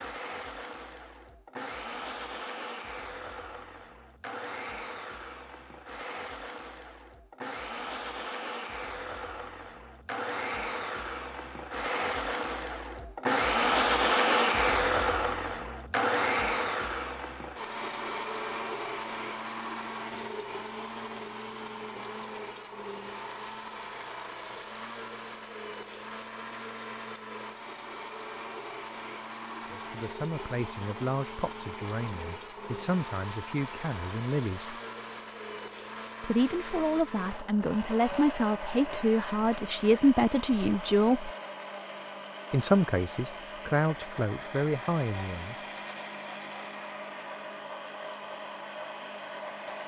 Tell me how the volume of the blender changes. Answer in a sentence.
The volume of the blender goes up, then down.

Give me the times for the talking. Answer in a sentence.
You can hear the talking from 29.8 to 34.8 s, from 36.2 to 41.3 s and from 42.5 to 45.5 s.